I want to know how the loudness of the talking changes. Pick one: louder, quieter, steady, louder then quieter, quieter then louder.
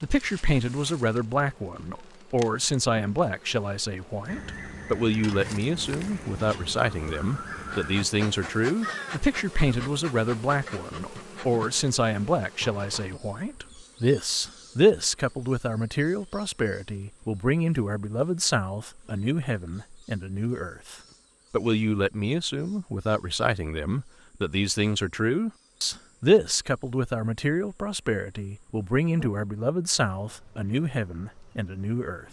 steady.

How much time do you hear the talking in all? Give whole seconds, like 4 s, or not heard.
32 s.